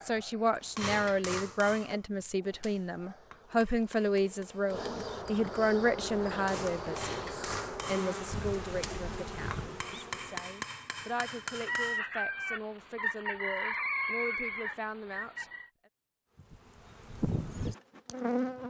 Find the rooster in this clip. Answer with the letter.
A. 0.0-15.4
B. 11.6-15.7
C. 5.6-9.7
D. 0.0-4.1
B.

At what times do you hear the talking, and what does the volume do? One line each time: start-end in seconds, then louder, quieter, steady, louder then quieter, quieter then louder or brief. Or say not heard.
0.0-15.4 quieter.